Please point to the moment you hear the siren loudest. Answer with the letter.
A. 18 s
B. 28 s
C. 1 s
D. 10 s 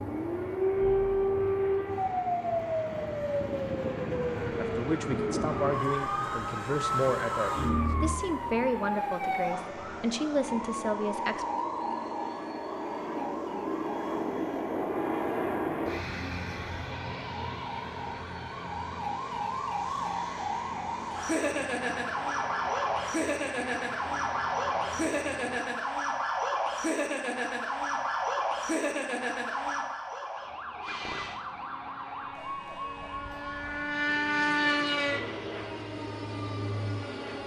C.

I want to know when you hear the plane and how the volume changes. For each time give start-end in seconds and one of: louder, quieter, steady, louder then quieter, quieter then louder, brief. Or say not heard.
0.0-25.6 louder then quieter
30.8-37.4 louder then quieter.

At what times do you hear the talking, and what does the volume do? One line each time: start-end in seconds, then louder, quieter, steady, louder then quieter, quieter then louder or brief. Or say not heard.
4.5-11.4 steady.